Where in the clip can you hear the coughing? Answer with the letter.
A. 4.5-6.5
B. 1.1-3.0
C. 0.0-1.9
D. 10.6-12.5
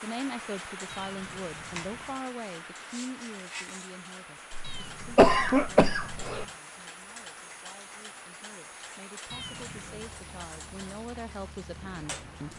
A.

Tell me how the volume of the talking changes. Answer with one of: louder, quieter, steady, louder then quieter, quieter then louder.
quieter then louder.